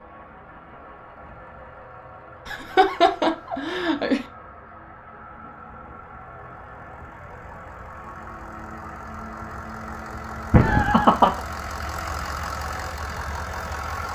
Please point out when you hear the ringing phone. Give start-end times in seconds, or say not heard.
not heard.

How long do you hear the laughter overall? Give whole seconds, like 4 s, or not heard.
3 s.